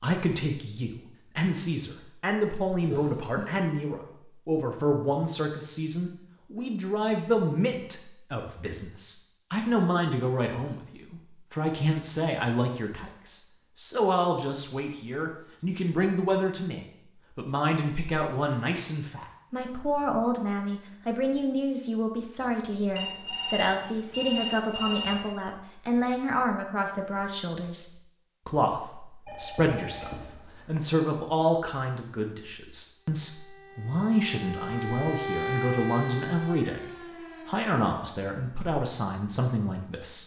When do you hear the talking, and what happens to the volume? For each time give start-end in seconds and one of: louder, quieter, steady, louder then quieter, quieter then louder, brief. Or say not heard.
0.0-40.2 steady.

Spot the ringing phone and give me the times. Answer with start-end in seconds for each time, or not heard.
2.9-3.6, 22.9-25.3, 29.2-30.8.